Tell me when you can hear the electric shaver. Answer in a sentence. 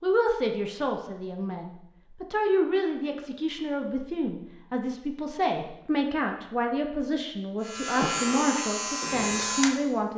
You can hear the electric shaver from 7.6 to 10.1 s.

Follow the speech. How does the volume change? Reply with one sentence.
The loudness of the speech stays about the same.